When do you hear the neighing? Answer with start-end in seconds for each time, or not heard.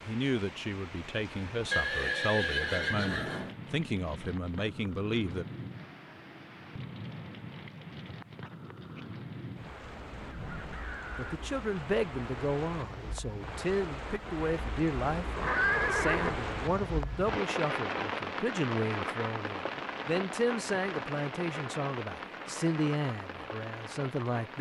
1.7-3.5, 15.2-16.4.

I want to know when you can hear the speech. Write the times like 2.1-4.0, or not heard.
0.1-5.5, 11.2-24.5.